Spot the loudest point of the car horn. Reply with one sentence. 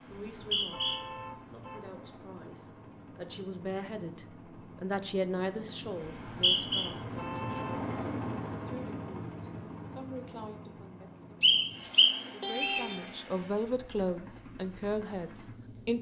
The loudest moment of the car horn is at 13 seconds.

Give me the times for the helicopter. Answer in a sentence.
You can hear the helicopter from 0.0 to 15.9 s.